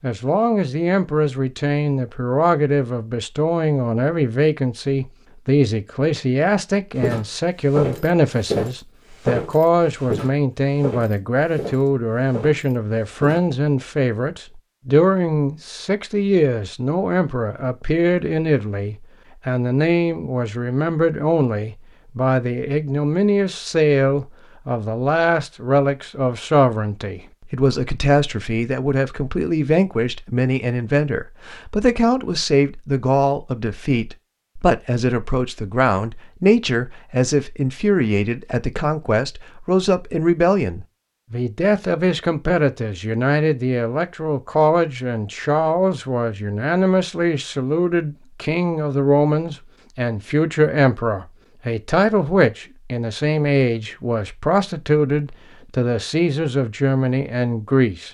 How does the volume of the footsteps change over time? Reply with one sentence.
The volume of the footsteps goes down.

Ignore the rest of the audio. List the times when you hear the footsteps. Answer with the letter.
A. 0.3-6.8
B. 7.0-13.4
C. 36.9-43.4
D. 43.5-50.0
B.